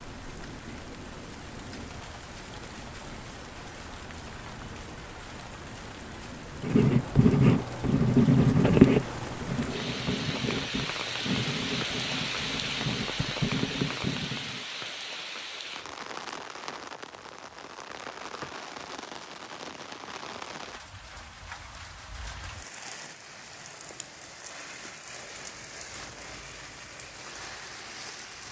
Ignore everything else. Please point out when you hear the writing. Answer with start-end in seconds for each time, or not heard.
6.6-14.7.